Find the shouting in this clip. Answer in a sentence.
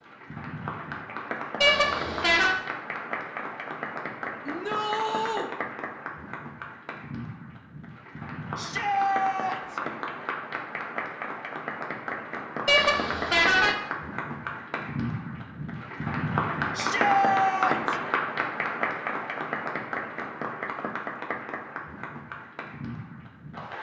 The shouting can be heard from 4.5 to 5.5 s, from 8.6 to 9.8 s and from 16.8 to 17.9 s.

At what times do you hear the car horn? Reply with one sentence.
The car horn can be heard from 1.6 to 2.6 s and from 12.7 to 13.8 s.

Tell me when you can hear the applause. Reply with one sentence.
The applause can be heard from 0.0 to 23.7 s.